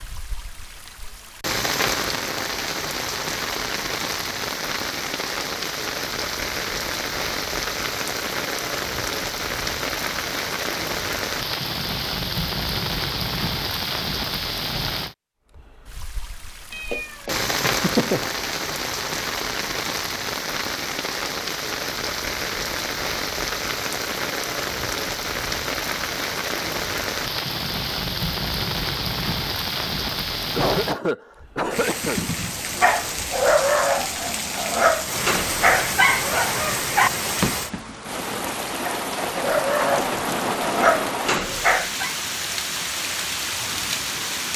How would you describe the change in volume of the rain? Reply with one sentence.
The volume of the rain stays about the same.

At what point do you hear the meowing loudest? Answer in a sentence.
The volume of the meowing peaks at 18 seconds.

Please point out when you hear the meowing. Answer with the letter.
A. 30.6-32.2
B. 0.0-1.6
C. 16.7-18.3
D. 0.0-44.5
C.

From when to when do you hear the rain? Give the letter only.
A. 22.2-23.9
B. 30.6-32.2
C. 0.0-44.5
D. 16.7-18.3
C.